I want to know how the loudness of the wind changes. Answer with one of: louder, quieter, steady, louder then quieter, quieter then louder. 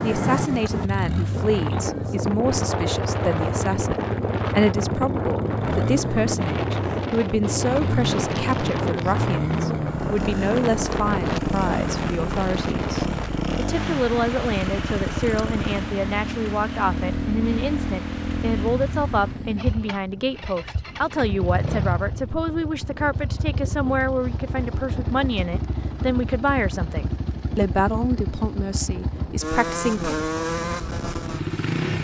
quieter.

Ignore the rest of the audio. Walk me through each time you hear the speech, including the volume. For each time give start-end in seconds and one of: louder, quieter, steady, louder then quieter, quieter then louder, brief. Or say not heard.
0.0-30.2 steady.